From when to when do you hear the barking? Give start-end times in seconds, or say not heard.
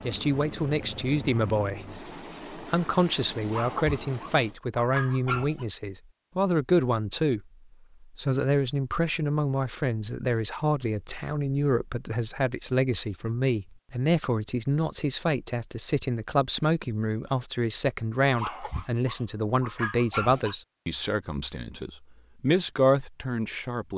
3.5-5.7, 18.4-20.6.